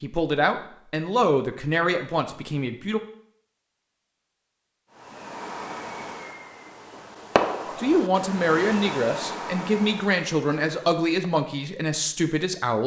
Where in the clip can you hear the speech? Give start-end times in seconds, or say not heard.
0.0-3.0, 7.8-12.8.